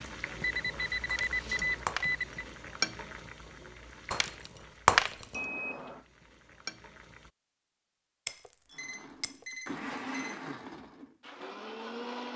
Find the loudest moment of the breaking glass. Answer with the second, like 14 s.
5 s.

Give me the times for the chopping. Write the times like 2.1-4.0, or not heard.
not heard.